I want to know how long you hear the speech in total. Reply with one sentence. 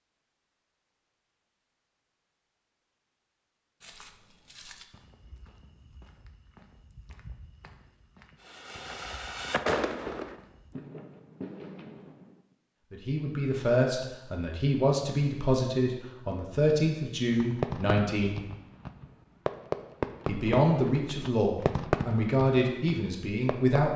The speech can be heard for 9 seconds in total.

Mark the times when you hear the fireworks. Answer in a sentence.
You can hear the fireworks from 8.4 to 12.4 s and from 17.3 to 23.8 s.